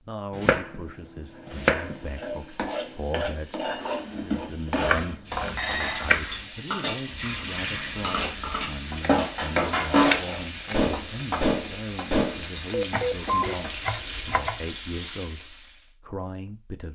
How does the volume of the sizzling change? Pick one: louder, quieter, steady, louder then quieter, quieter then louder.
steady.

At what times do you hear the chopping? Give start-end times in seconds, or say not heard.
0.3-2.4, 4.8-6.5, 8.5-10.8, 12.9-14.6.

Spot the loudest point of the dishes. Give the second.
10 s.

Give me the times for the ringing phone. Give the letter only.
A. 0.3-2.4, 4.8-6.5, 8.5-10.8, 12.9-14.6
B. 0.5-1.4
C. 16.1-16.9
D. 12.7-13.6
D.